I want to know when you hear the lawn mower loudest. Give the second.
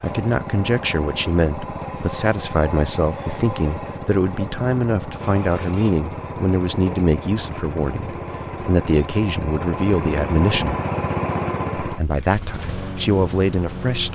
11 s.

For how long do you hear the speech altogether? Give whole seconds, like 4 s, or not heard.
13 s.